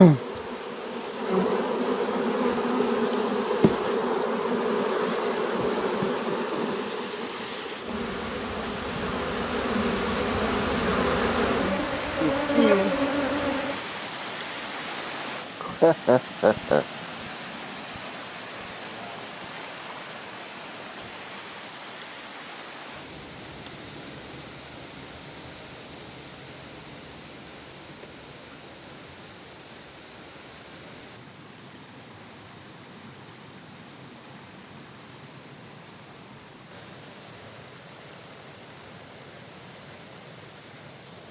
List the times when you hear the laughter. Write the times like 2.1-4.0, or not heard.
15.6-16.9.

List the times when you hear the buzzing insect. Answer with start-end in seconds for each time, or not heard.
0.0-13.8.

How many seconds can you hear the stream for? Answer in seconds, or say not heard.
41 s.